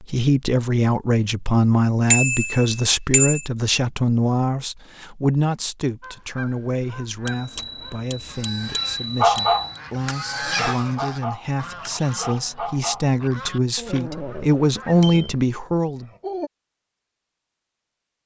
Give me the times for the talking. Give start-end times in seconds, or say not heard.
0.0-16.1.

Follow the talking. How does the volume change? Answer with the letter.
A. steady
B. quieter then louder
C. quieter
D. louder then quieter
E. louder
B.